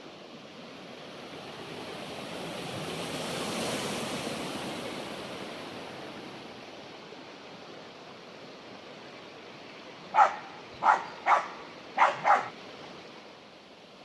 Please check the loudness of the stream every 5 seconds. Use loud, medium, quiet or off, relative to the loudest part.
loud, medium, medium.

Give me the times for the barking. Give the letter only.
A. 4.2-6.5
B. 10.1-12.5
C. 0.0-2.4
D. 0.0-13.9
B.